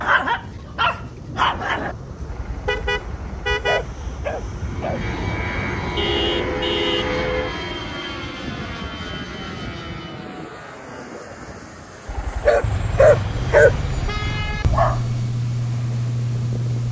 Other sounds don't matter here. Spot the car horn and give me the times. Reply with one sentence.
You can hear the car horn from 2.6 to 3.9 s, from 6.0 to 7.5 s and from 12.6 to 14.7 s.